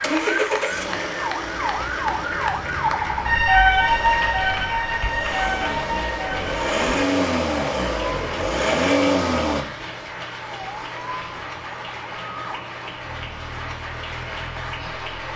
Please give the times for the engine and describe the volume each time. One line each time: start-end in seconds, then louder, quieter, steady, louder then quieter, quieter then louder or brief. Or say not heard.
0.0-9.7 quieter then louder.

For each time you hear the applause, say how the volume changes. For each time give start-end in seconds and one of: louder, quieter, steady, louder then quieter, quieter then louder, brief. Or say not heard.
0.0-15.3 steady.